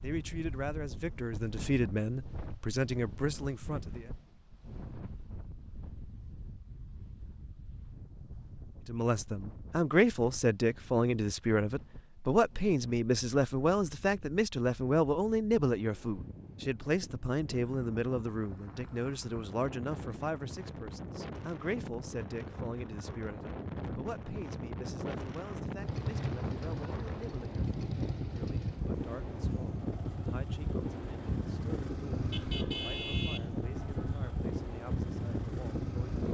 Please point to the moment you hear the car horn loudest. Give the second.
33 s.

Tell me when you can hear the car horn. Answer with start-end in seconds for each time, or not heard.
32.3-34.3.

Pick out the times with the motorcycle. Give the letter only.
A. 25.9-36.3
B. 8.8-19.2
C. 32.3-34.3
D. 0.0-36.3
A.